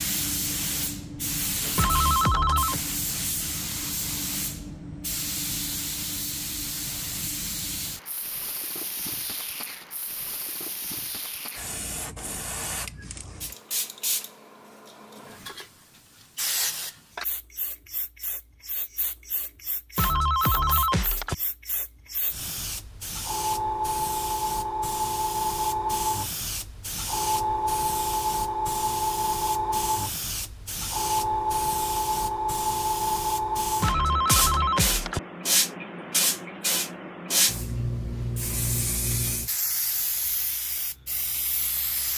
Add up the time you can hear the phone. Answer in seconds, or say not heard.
4 s.